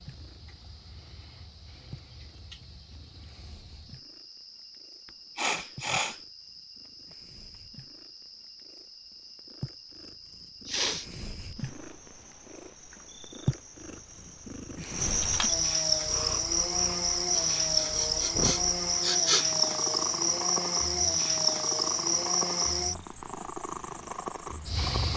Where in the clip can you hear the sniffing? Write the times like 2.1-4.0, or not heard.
5.3-6.2, 10.7-11.1, 17.3-19.4.